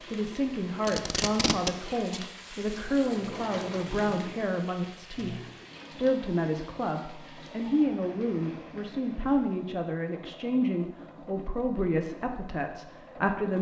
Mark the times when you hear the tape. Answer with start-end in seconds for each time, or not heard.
0.8-2.2.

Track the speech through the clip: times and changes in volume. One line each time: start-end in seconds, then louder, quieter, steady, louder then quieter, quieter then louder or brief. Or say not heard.
0.1-13.5 steady.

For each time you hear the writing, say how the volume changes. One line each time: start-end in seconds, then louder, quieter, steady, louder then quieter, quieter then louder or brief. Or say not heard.
not heard.